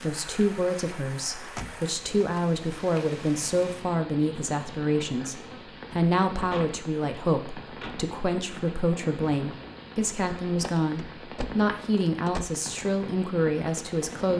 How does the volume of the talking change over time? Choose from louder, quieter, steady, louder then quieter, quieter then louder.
steady.